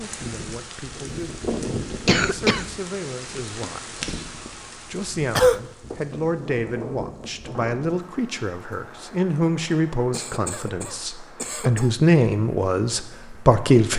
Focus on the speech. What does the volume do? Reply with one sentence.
The loudness of the speech goes up.